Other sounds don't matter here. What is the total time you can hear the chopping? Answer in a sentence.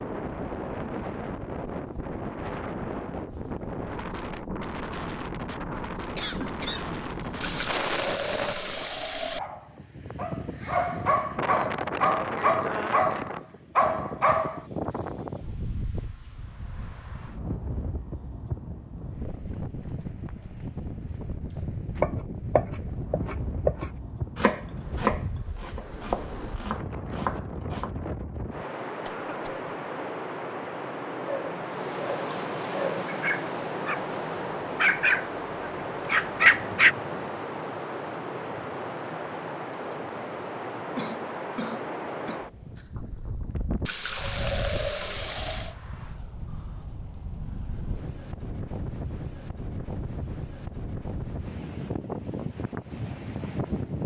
The chopping can be heard for 6 seconds in total.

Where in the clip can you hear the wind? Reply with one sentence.
You can hear the wind from 0.0 to 54.0 s.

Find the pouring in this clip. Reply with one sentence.
You can hear the pouring from 7.4 to 9.4 s and from 43.9 to 45.8 s.